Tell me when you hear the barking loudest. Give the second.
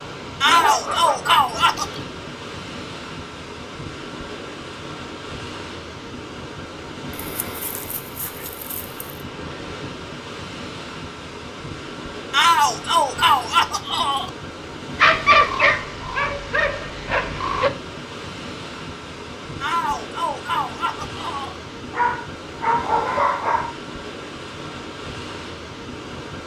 15 s.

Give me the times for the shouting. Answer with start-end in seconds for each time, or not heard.
0.4-2.0, 12.3-14.3, 19.6-21.6.